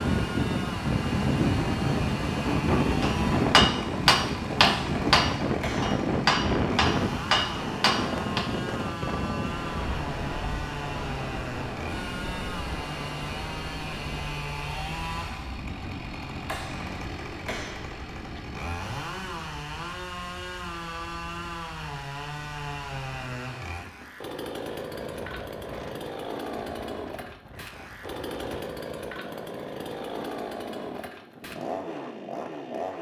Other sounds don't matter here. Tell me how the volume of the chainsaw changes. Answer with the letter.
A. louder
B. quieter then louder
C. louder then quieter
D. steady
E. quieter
D.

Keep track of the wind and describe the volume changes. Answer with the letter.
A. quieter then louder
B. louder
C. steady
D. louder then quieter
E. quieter
E.